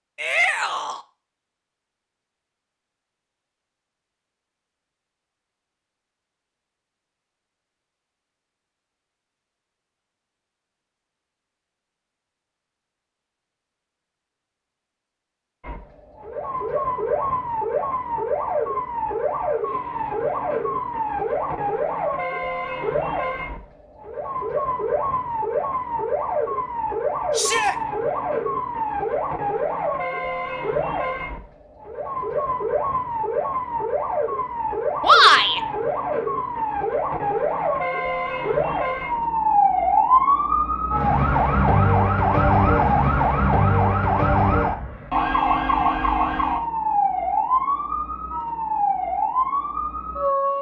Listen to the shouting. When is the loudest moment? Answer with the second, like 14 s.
35 s.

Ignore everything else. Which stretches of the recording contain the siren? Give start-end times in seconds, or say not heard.
15.6-50.5.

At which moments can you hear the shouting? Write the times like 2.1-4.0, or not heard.
0.1-1.0, 27.3-27.8, 35.0-35.6.